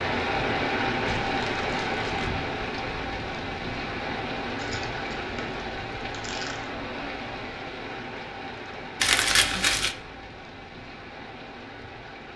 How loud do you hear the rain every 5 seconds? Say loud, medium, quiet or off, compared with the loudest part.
loud, medium, quiet.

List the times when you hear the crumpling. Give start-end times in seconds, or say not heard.
1.1-2.3, 4.5-6.7, 9.0-9.9.